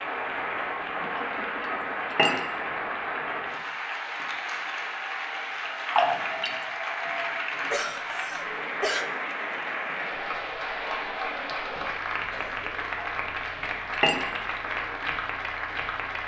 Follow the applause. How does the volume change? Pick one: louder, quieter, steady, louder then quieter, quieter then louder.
steady.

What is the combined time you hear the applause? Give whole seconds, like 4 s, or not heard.
16 s.